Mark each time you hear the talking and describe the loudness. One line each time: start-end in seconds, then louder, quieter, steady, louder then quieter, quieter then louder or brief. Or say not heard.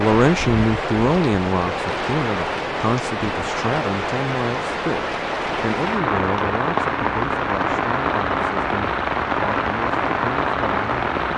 0.0-11.1 quieter.